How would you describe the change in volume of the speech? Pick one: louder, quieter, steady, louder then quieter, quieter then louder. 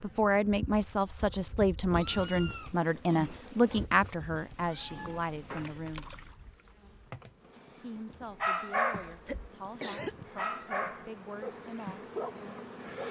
quieter.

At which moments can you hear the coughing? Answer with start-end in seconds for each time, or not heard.
8.9-10.3.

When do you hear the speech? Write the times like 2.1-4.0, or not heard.
0.0-6.0, 7.8-12.1.